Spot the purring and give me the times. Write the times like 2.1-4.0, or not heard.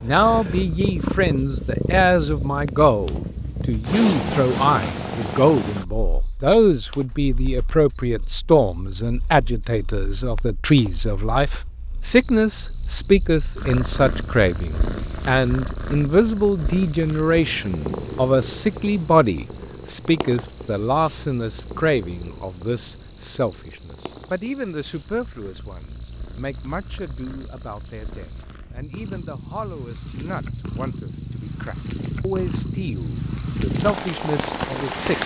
0.0-35.2.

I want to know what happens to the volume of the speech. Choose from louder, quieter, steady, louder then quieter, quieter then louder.
quieter.